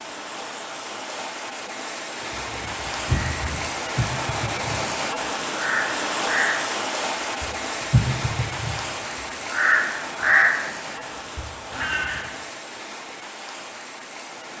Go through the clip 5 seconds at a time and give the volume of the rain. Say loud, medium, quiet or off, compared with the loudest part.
loud, loud, medium.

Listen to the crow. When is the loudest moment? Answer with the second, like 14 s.
10 s.